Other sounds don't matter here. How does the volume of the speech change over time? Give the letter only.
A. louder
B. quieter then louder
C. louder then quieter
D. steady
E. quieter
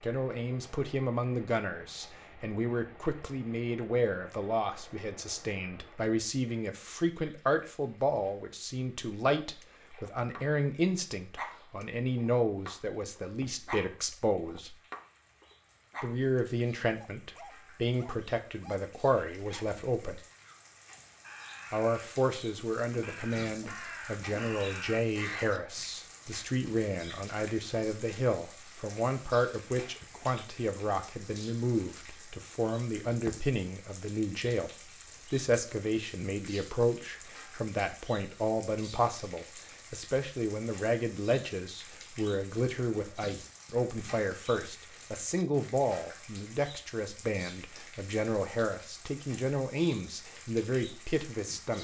D.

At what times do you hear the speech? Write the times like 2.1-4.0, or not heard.
0.0-14.8, 16.0-20.2, 21.7-51.7.